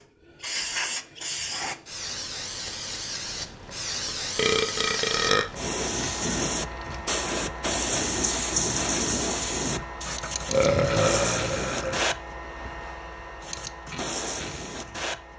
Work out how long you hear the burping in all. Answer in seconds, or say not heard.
3 s.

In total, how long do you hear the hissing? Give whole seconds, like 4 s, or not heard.
15 s.